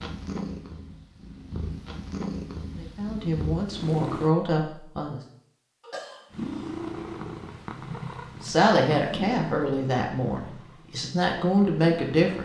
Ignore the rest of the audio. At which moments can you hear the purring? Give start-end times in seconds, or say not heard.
0.0-4.3, 6.3-12.4.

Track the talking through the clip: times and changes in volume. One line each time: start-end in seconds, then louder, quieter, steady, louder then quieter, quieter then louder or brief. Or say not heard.
2.8-5.2 brief
8.4-12.4 quieter then louder.